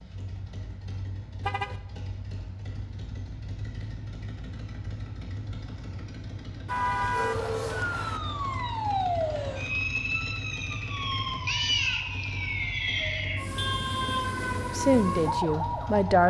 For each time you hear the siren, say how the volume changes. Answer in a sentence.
The siren can be heard from 7.1 to 16.2 s, at a steady volume.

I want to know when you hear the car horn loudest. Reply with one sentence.
The volume of the car horn peaks at 7 seconds.